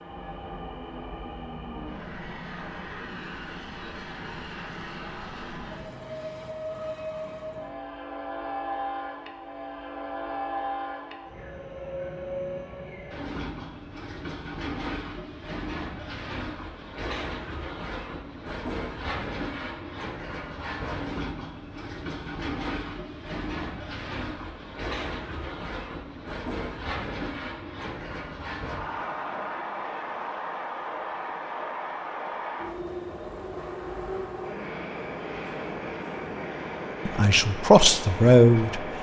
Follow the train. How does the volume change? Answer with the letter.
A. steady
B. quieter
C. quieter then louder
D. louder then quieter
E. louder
A.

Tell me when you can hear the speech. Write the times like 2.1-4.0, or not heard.
37.0-38.9.